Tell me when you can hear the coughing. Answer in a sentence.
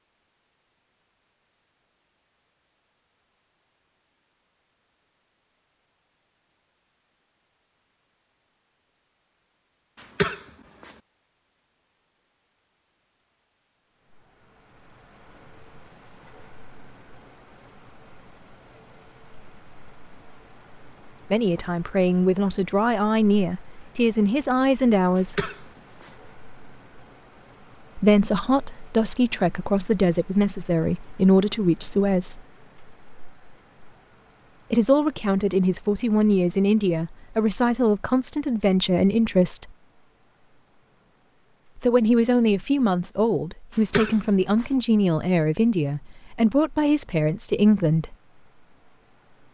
You can hear the coughing from 10.0 to 10.9 s, from 25.1 to 26.1 s and from 43.8 to 44.6 s.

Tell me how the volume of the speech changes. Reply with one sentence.
The volume of the speech stays about the same.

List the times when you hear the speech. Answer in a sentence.
The speech can be heard from 21.3 to 25.5 s, from 27.9 to 32.4 s, from 34.7 to 39.7 s and from 41.8 to 48.1 s.